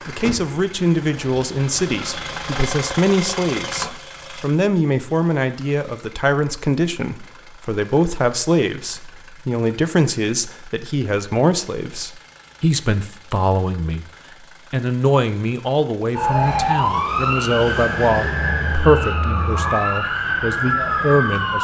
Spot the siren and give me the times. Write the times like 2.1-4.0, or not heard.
16.1-21.5.